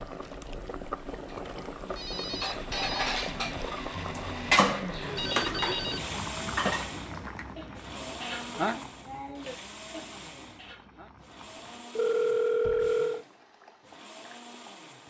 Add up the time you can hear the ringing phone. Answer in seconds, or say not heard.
3 s.